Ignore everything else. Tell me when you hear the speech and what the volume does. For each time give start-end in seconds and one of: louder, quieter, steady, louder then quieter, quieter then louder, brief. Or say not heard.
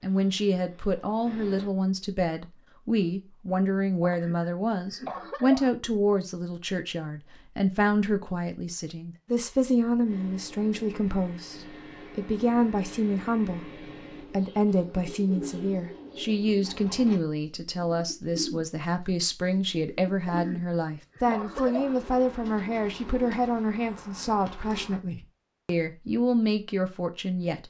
0.0-27.6 steady.